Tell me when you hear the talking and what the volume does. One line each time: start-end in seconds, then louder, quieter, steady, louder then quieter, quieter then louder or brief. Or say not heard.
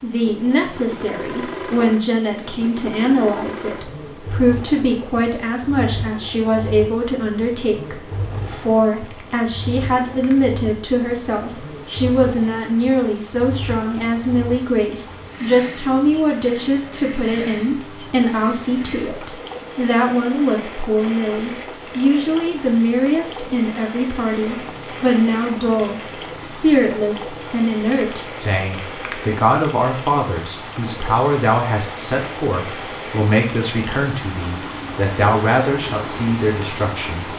0.0-37.3 steady.